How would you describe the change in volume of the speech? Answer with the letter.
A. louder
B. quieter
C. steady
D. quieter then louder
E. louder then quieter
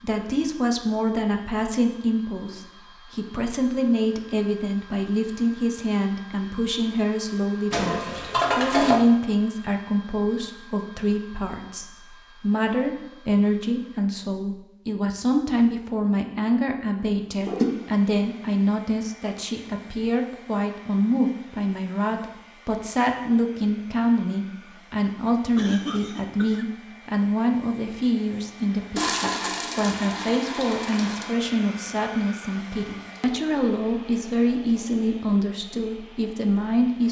C.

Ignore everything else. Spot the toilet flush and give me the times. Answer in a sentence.
You can hear the toilet flush from 7.7 to 9.0 s, from 17.0 to 17.6 s and from 28.9 to 31.4 s.